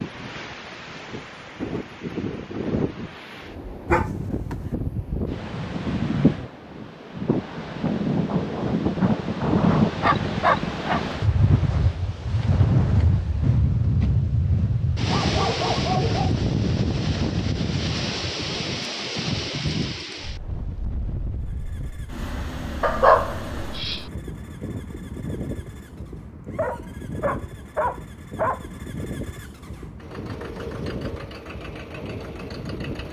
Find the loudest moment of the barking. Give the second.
23 s.